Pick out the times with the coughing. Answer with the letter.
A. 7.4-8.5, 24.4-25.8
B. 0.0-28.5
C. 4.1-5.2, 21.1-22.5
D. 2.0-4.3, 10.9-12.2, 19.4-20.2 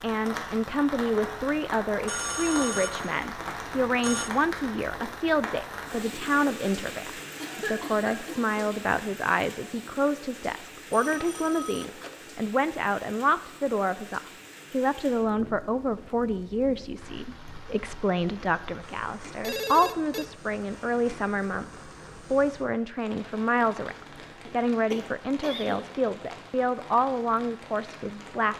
A.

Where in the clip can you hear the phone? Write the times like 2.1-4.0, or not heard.
2.0-4.3, 10.9-12.2, 19.4-20.2.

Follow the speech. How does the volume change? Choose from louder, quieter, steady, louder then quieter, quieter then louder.
steady.